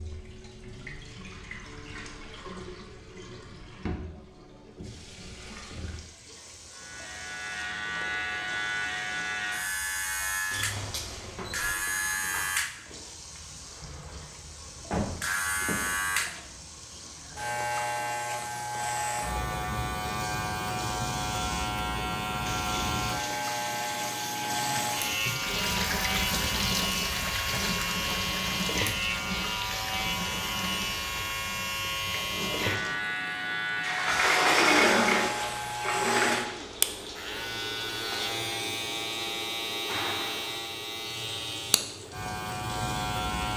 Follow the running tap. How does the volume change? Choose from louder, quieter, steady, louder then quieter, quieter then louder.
louder then quieter.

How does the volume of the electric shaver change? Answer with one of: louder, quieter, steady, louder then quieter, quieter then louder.
steady.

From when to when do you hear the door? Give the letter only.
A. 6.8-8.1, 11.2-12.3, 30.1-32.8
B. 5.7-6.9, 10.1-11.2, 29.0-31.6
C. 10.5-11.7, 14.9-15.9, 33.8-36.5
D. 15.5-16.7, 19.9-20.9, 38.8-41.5
C.